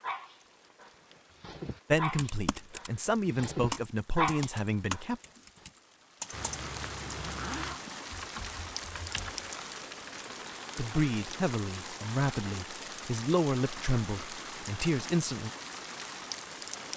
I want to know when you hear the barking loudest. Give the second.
4 s.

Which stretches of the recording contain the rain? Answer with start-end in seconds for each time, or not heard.
0.0-16.9.